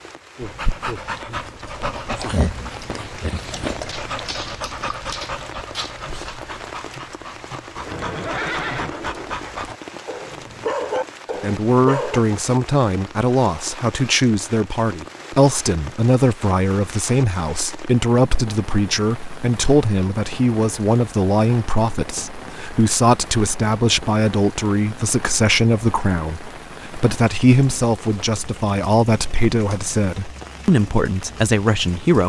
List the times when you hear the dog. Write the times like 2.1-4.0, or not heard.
0.4-12.2.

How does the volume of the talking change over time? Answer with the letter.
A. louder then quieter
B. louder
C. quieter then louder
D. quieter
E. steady
E.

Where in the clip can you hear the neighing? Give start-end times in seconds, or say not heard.
7.8-9.4.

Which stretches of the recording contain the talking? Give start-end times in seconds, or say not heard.
11.4-32.2.